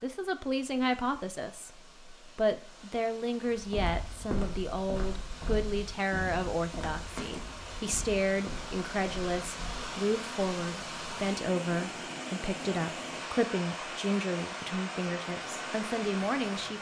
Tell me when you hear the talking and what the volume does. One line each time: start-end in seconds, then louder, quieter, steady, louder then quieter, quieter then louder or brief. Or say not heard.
0.0-16.7 steady.